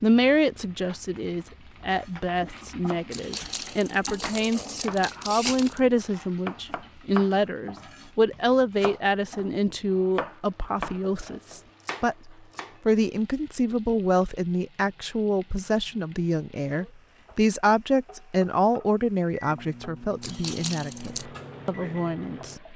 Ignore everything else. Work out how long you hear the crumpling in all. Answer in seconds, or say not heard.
4 s.